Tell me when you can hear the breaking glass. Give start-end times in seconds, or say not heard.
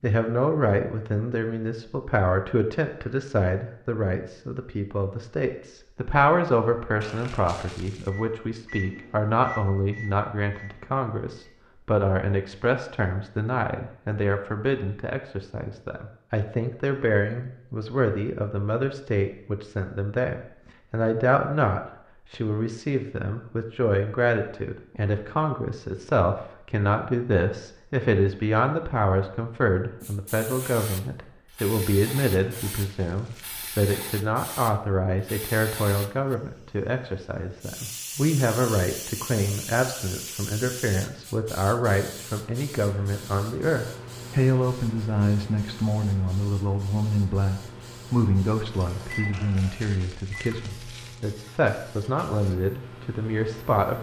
not heard.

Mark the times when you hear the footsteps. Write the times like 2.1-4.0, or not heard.
not heard.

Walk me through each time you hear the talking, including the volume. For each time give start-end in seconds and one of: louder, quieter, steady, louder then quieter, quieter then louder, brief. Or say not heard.
0.0-53.9 steady.